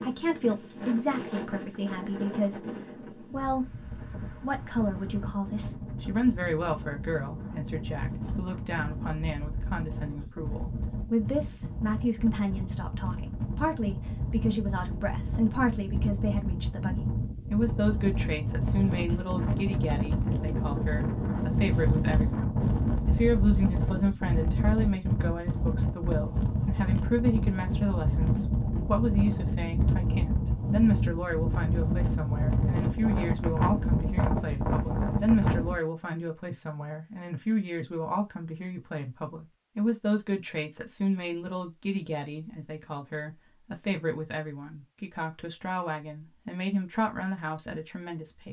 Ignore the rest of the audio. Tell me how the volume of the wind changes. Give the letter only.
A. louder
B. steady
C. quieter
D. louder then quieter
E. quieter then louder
A.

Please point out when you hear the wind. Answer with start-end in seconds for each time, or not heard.
0.0-35.8.